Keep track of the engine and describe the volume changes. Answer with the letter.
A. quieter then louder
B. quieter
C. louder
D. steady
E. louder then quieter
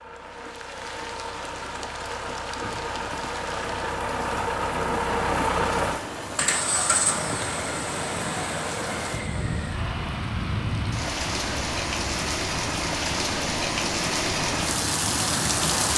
E.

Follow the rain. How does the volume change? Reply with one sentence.
The loudness of the rain goes up.